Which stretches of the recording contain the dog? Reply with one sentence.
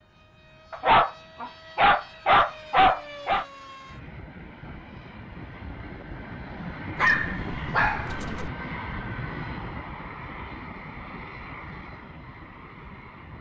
The dog can be heard from 0.7 to 3.5 s and from 7.0 to 8.5 s.